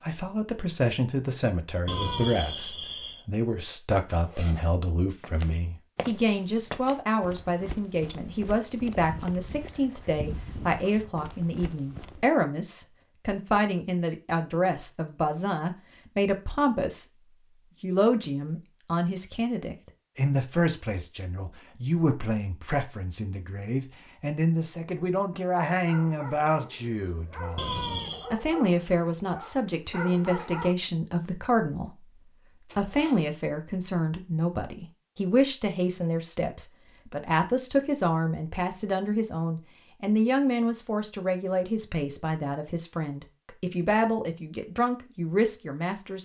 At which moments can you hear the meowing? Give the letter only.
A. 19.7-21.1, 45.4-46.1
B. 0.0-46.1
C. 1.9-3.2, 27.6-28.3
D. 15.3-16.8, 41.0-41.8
C.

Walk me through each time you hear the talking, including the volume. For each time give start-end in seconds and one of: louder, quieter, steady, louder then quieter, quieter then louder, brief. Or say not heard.
0.0-46.1 steady.